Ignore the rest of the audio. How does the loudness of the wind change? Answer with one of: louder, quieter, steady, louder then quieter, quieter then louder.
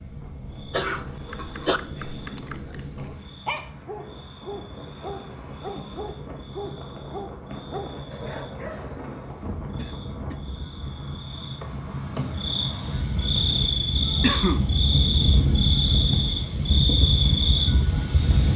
louder.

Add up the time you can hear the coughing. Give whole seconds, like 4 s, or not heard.
2 s.